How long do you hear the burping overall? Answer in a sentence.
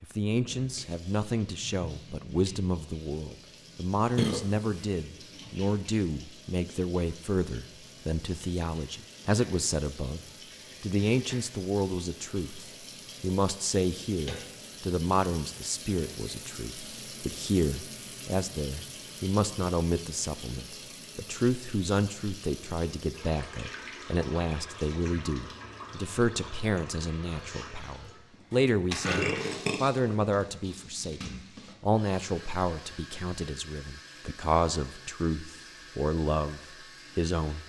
You can hear the burping for 2 seconds altogether.